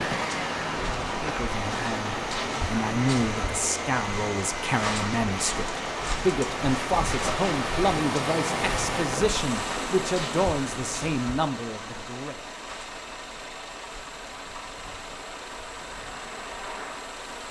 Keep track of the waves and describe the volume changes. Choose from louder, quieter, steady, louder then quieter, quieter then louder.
quieter.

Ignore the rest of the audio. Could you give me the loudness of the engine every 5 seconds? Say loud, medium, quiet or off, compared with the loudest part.
loud, loud, medium, medium.